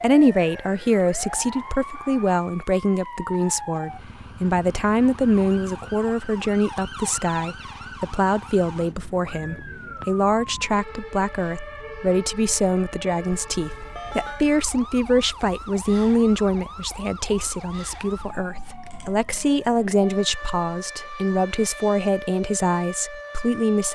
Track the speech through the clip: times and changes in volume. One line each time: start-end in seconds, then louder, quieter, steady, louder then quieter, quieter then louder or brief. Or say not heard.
0.0-23.9 steady.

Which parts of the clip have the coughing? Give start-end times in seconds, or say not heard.
not heard.